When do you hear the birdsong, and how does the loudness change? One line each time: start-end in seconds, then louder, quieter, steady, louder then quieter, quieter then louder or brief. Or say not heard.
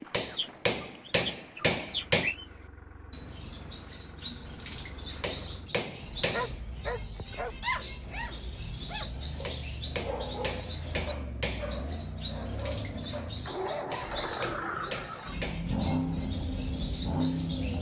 0.0-17.7 steady.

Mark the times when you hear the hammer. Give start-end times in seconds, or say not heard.
0.1-2.4, 5.2-6.5, 9.4-11.8, 13.9-15.7.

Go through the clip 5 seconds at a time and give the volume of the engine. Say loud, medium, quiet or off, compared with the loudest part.
quiet, quiet, medium, loud.